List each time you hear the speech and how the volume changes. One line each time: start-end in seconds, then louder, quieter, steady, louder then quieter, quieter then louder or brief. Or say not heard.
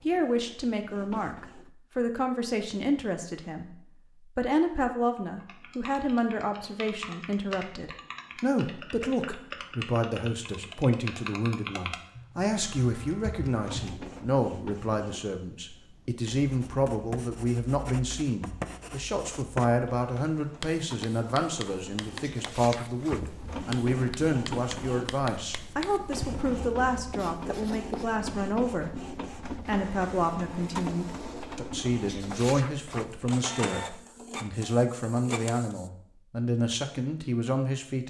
0.0-38.0 steady.